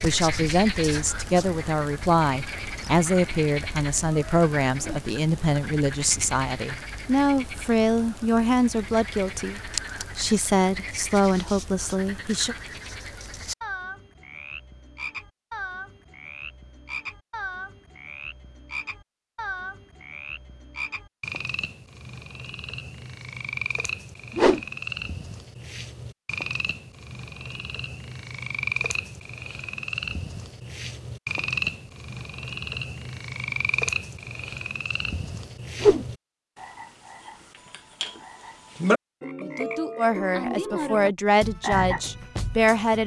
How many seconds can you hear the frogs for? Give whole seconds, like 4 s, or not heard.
43 s.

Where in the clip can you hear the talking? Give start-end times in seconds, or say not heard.
0.0-12.6, 40.0-43.0.